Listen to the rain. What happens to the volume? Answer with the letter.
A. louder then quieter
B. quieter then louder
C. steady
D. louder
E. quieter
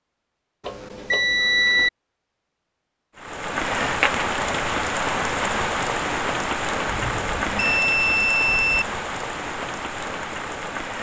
E.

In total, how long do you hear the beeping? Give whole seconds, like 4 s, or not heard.
3 s.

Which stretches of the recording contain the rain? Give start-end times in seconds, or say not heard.
3.1-10.9.